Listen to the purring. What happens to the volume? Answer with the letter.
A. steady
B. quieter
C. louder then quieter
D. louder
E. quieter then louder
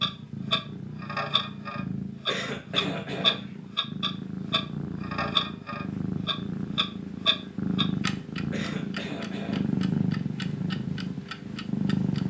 D.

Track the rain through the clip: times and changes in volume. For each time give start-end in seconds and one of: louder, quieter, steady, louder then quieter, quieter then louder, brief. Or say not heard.
not heard.